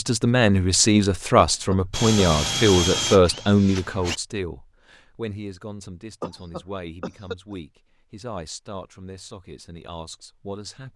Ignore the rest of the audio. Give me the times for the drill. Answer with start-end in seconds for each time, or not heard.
1.9-4.2.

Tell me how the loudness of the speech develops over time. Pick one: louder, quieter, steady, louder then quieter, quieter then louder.
quieter.